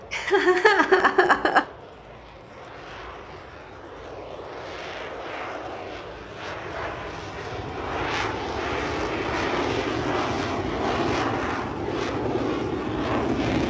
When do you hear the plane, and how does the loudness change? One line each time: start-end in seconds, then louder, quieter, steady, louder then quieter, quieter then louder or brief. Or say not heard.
0.0-13.6 louder.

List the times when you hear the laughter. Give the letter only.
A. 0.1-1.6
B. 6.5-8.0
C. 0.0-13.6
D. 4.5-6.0
A.